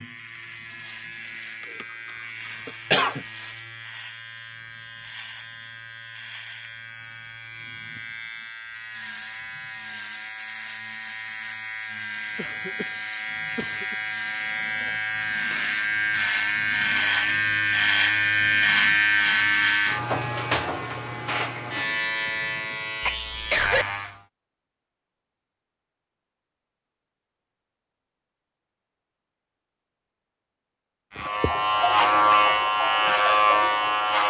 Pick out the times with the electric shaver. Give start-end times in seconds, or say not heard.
0.0-24.2, 31.1-34.2.